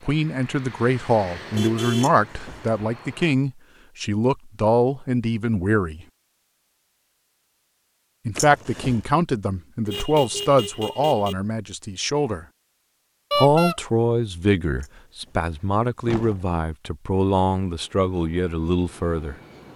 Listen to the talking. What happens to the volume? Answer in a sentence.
The loudness of the talking stays about the same.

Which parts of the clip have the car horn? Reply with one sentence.
You can hear the car horn from 1.5 to 2.1 s, from 9.8 to 11.3 s and from 13.3 to 13.8 s.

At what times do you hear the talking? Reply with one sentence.
You can hear the talking from 0.1 to 6.0 s, from 8.2 to 12.4 s and from 13.3 to 19.4 s.